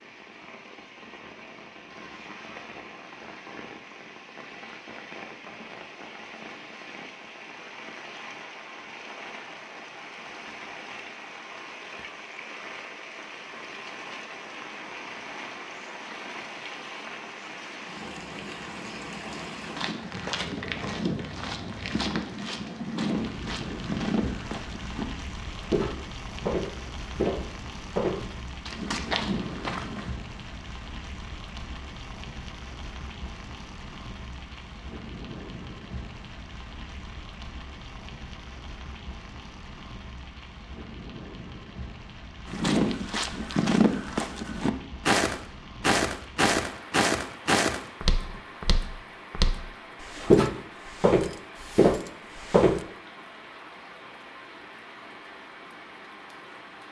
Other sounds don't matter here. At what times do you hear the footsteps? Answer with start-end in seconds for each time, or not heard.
19.8-30.1, 42.5-52.8.